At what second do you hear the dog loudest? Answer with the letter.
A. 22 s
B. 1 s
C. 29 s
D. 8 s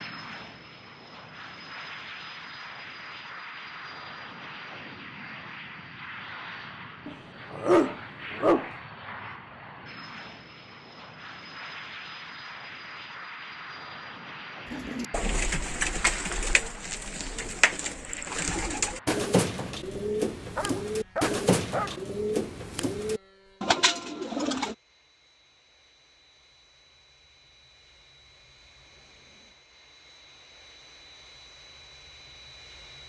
D.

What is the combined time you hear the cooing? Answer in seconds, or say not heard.
10 s.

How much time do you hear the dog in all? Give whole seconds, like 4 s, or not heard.
3 s.